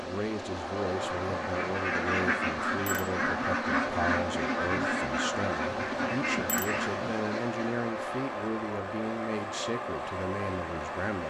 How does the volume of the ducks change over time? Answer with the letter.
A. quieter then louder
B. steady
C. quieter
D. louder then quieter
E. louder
B.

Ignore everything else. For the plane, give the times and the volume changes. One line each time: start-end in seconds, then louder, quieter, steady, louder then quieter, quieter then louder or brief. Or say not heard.
0.0-11.2 steady.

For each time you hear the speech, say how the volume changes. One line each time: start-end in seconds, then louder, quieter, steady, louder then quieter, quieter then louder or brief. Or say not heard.
0.0-11.2 steady.